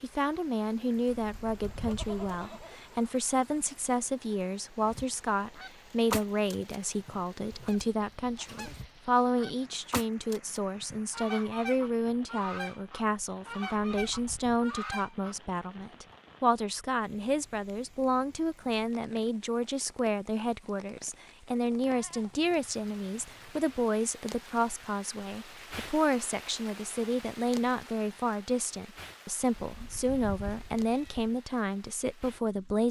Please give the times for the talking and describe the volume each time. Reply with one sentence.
The talking can be heard from 0.0 to 32.8 s, at a steady volume.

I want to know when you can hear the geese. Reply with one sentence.
The geese can be heard from 4.8 to 15.3 s.